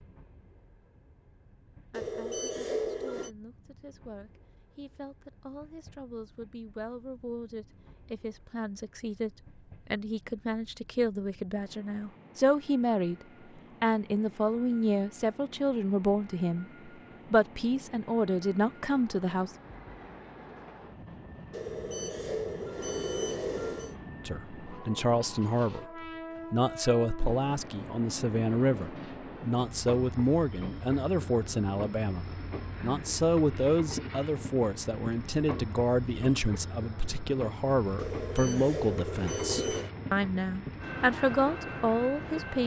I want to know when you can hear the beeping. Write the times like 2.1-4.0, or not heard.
1.9-3.3, 21.5-23.9, 38.0-39.9.